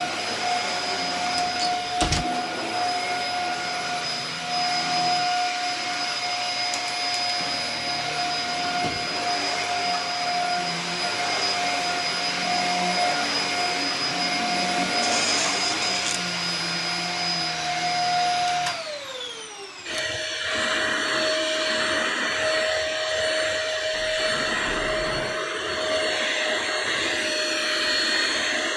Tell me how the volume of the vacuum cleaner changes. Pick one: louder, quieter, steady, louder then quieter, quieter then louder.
steady.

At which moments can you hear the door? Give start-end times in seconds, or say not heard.
1.4-2.2, 15.0-16.2, 23.9-25.4.